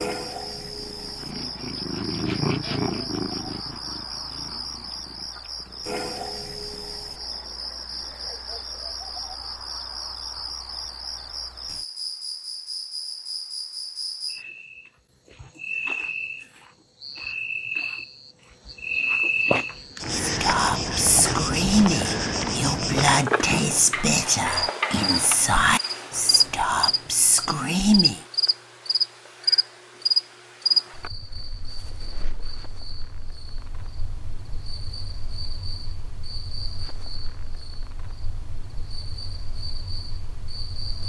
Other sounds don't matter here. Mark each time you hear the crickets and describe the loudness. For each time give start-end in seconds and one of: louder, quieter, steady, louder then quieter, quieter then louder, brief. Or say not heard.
0.0-41.0 louder then quieter.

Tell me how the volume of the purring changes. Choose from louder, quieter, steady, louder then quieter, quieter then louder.
louder then quieter.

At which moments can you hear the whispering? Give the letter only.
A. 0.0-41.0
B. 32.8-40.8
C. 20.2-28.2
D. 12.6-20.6
C.